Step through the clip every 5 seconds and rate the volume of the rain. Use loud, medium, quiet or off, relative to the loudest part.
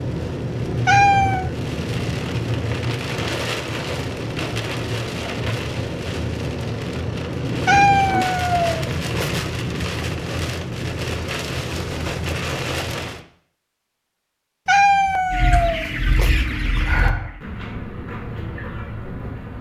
loud, loud, loud, off.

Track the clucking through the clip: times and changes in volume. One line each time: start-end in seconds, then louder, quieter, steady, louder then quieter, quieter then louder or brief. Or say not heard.
15.3-19.5 quieter.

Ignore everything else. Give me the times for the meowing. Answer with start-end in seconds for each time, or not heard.
0.8-1.5, 7.7-9.3, 14.7-16.3.